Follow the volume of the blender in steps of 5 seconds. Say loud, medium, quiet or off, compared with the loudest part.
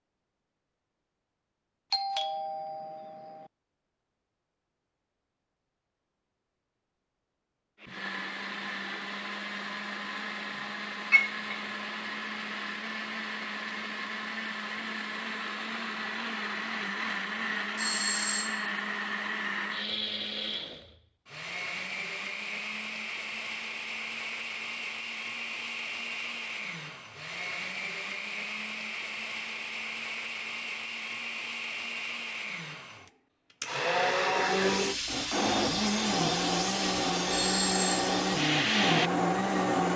off, medium, medium, medium, medium, medium, loud, loud.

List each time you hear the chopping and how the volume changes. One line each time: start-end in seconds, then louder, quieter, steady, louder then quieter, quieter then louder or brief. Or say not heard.
not heard.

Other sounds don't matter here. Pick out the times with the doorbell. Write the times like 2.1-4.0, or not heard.
1.9-3.5, 17.8-18.7, 37.3-38.0.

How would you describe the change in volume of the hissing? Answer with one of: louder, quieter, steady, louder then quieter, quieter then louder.
steady.